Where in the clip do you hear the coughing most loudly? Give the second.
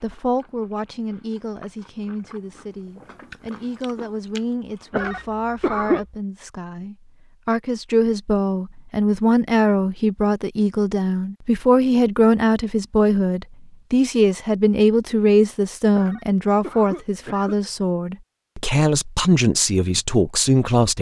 6 s.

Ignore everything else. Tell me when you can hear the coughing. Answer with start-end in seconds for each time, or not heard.
4.9-6.0, 15.9-17.6.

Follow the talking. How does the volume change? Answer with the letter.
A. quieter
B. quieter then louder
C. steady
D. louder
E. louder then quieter
D.